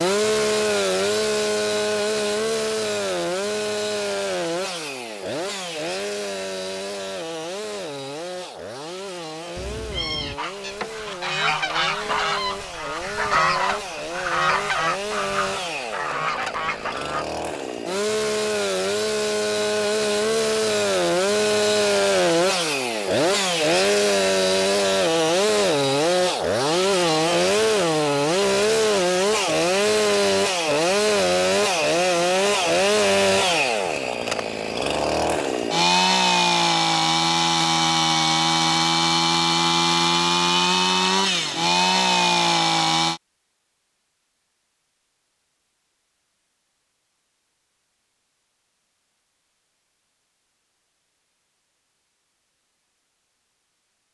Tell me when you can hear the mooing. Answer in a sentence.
You can't hear the mooing here.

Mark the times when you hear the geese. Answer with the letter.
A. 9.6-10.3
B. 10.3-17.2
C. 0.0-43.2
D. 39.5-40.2
B.